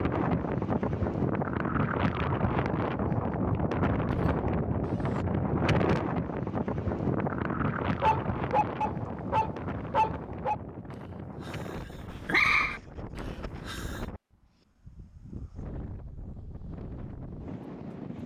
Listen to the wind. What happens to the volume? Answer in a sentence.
The volume of the wind goes down.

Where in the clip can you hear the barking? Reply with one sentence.
The barking can be heard from 8.0 to 14.0 s.